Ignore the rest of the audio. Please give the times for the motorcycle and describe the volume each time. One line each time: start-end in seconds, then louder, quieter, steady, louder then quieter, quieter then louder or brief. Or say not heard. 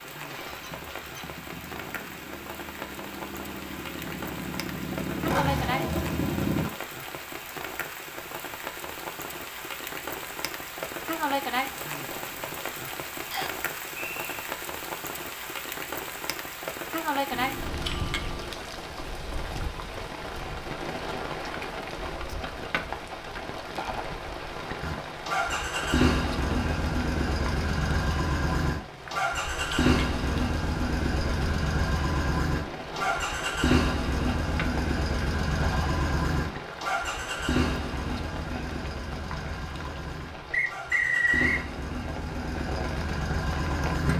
0.1-6.7 louder
24.8-44.1 quieter.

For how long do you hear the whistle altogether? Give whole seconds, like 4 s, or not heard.
2 s.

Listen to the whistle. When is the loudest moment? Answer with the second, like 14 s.
41 s.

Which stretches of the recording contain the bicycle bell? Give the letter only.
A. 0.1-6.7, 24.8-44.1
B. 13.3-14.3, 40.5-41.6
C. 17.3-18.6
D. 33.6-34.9
C.